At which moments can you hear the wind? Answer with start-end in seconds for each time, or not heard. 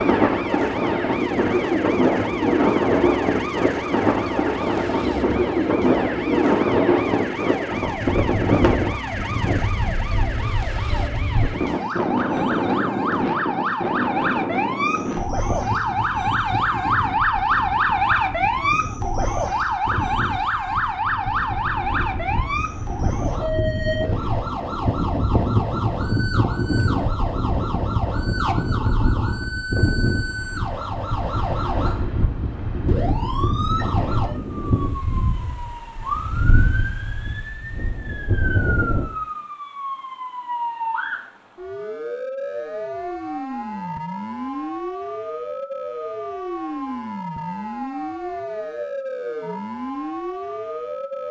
0.0-39.1.